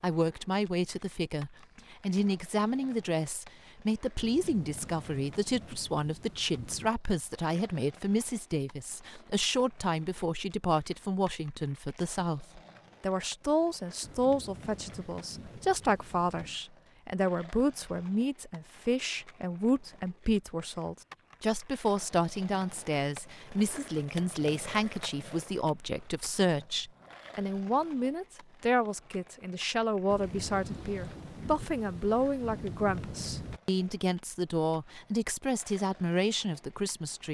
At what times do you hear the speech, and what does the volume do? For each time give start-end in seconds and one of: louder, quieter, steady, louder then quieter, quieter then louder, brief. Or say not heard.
0.0-37.2 steady.